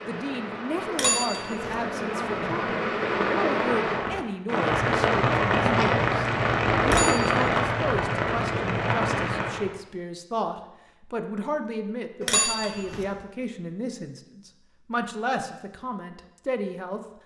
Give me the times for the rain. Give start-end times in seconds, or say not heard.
0.0-9.8.